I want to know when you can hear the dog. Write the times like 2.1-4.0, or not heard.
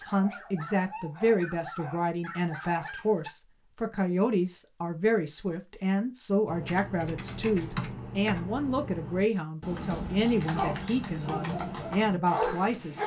0.0-3.3, 10.4-13.0.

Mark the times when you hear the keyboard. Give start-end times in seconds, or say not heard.
6.5-12.2.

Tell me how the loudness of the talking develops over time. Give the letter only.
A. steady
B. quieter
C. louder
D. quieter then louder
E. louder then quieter
A.